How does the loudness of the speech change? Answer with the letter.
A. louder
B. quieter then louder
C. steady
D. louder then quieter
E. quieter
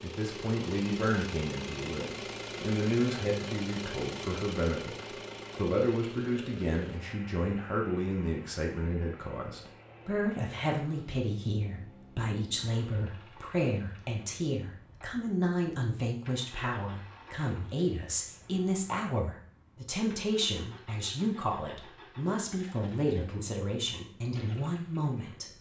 C.